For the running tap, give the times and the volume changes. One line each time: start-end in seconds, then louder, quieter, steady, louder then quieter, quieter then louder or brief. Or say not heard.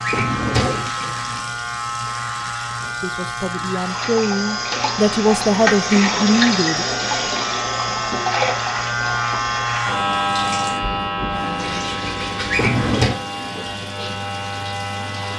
0.0-15.3 louder then quieter.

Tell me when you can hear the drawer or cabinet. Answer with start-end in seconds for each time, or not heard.
0.0-0.9, 12.5-13.2.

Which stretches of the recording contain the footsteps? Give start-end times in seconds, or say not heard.
not heard.